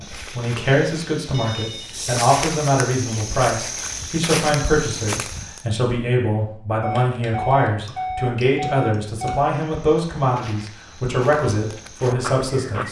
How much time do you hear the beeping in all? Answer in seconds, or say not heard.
3 s.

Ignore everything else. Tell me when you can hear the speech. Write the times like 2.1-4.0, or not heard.
0.0-12.8.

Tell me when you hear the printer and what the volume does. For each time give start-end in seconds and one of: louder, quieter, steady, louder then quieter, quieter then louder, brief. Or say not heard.
not heard.